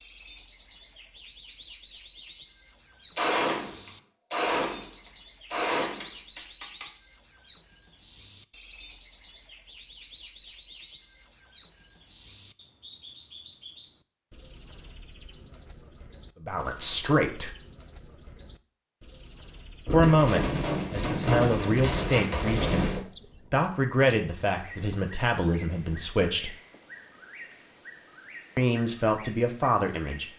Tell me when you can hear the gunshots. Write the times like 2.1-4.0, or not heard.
3.1-4.9, 5.5-6.8, 19.9-23.1.